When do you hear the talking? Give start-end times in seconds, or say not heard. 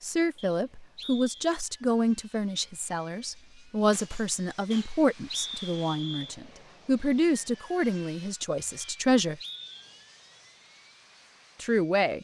0.0-9.4, 11.6-12.2.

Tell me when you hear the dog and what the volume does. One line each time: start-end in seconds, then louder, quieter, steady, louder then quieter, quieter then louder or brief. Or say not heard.
not heard.